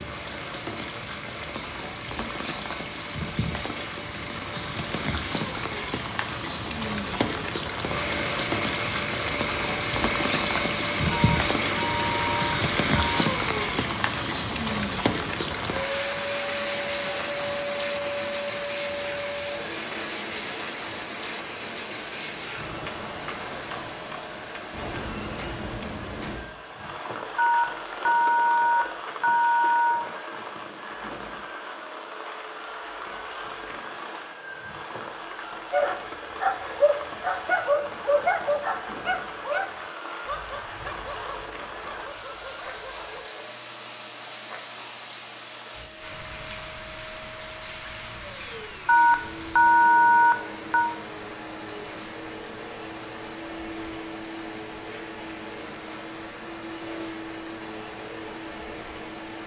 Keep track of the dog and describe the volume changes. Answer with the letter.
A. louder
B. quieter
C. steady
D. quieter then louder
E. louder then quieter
B.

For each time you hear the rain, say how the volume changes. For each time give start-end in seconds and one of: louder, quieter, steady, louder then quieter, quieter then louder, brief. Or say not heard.
0.0-59.4 quieter.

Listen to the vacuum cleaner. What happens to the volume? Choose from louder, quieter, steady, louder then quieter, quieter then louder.
quieter.